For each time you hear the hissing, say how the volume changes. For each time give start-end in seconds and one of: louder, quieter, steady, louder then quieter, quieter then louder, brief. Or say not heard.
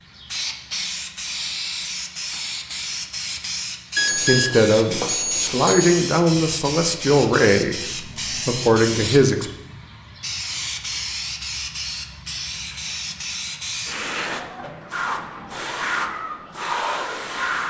0.0-17.6 steady.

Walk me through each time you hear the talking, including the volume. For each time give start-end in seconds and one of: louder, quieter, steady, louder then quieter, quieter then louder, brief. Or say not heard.
4.2-9.5 steady.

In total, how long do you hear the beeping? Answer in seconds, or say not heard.
2 s.